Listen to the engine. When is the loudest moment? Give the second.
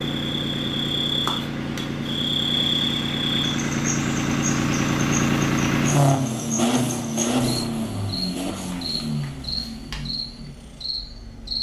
6 s.